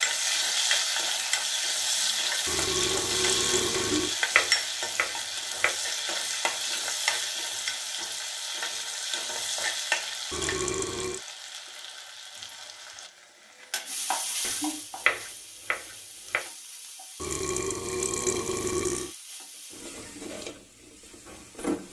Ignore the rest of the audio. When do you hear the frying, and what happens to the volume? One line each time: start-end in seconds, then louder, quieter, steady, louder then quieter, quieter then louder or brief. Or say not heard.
0.0-21.8 quieter.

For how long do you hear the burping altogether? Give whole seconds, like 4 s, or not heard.
5 s.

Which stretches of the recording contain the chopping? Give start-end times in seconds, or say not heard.
3.8-5.8, 14.4-16.4.